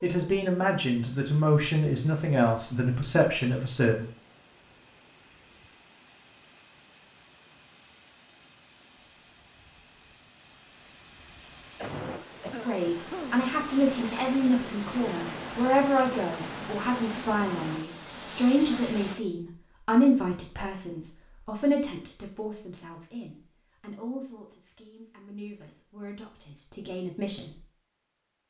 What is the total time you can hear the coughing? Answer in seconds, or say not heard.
2 s.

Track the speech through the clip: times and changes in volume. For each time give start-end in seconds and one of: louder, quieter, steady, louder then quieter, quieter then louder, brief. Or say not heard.
0.0-4.0 steady
12.7-27.6 quieter.